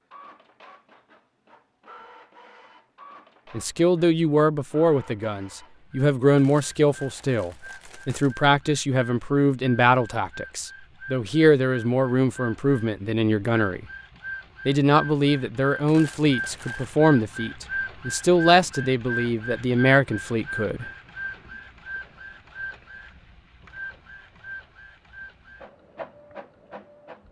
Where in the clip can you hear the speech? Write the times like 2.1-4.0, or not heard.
3.5-13.8, 14.7-20.9.